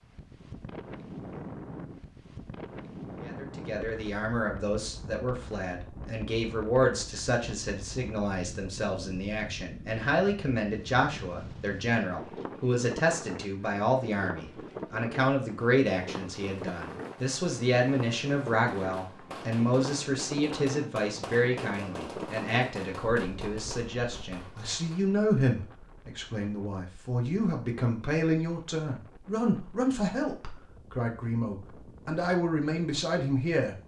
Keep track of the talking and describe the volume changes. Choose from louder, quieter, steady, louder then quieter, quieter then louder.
steady.